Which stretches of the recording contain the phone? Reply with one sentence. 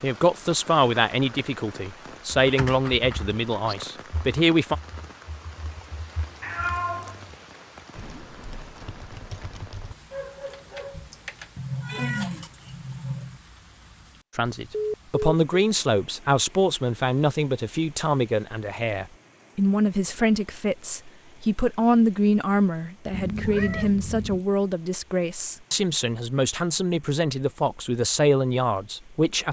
You can hear the phone from 14.7 to 15.6 s.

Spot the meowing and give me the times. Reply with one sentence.
The meowing can be heard from 6.4 to 7.3 s, from 11.6 to 13.4 s and from 23.1 to 24.4 s.